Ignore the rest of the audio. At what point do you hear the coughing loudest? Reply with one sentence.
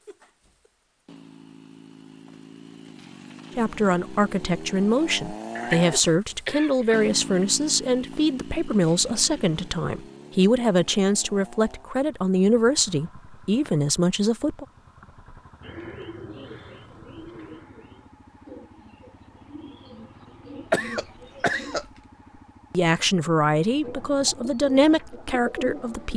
The loudest moment of the coughing is at 21 seconds.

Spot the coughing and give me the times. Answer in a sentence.
The coughing can be heard from 5.5 to 7.0 s and from 20.7 to 21.9 s.